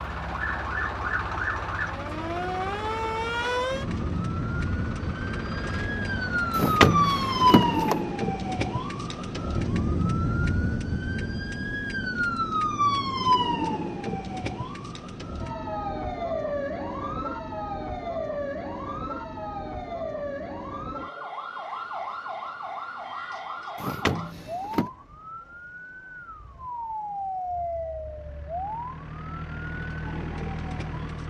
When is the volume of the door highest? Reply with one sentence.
The volume of the door peaks at 7 seconds.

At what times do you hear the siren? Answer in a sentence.
You can hear the siren from 0.0 to 31.2 s.